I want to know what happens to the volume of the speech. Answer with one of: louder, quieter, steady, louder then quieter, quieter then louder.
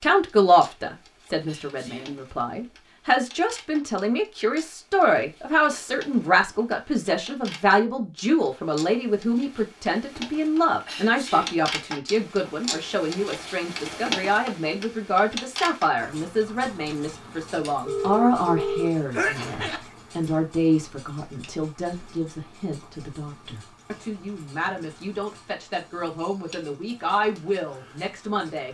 quieter.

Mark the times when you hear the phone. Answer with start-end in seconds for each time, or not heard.
17.9-19.8.